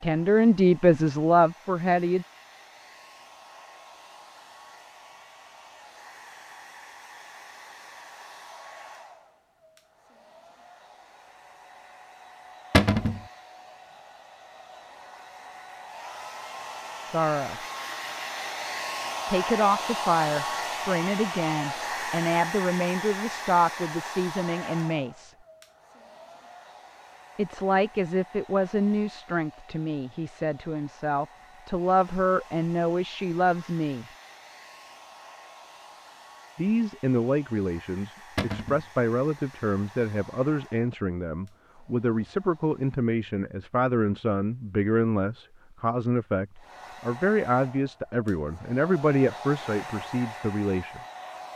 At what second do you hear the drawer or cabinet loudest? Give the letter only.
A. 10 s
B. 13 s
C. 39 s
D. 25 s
B.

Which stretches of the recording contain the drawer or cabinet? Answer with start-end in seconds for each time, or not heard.
12.7-13.2, 38.4-38.9.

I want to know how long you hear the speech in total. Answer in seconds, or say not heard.
30 s.